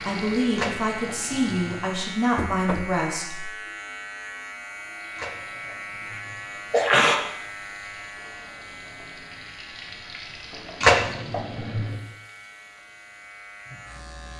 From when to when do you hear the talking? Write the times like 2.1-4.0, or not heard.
0.0-3.5.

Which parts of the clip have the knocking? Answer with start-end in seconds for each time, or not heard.
2.4-3.0.